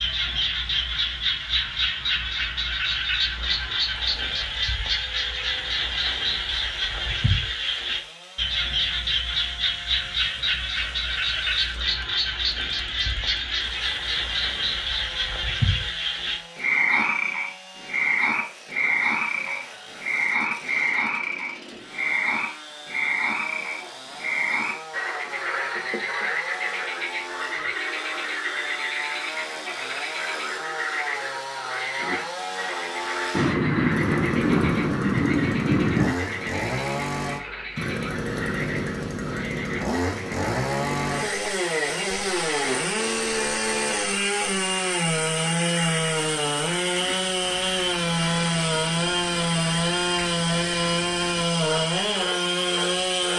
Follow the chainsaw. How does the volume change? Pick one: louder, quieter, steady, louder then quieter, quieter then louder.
louder.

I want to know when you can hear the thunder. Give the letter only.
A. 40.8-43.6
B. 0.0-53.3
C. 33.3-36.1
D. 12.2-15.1
C.